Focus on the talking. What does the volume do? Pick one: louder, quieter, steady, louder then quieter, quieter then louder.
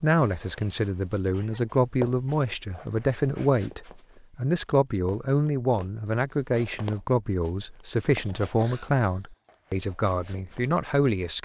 steady.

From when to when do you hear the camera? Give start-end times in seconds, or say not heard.
not heard.